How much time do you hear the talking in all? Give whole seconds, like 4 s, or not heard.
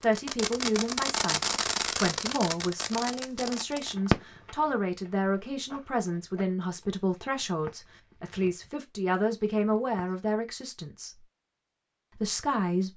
12 s.